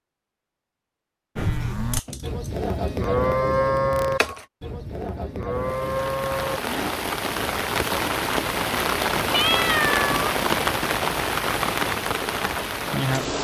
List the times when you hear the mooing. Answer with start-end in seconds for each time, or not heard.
1.4-7.0.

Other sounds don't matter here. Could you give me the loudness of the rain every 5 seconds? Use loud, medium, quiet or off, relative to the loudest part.
off, loud, loud.